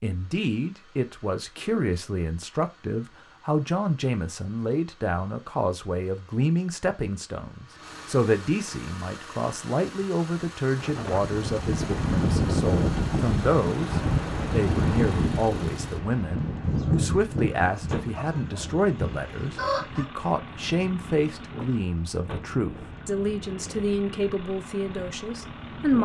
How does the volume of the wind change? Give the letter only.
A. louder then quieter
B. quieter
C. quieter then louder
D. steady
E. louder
B.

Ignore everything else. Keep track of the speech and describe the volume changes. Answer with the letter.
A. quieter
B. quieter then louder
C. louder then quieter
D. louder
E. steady
E.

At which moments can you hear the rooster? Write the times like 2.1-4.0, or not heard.
16.6-20.1.